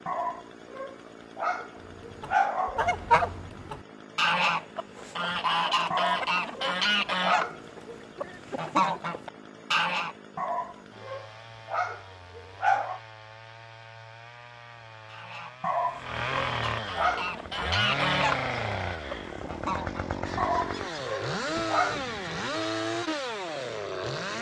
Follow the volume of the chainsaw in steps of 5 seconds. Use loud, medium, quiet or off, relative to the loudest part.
quiet, quiet, quiet, loud, loud.